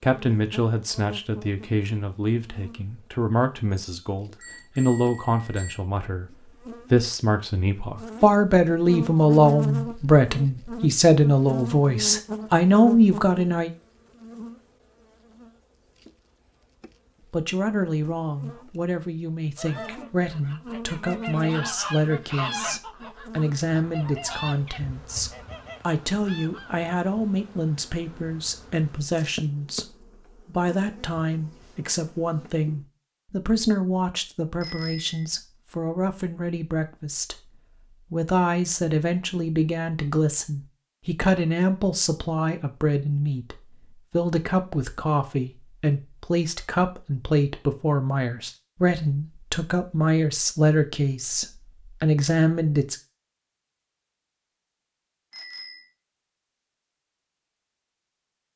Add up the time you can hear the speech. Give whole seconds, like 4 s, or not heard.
49 s.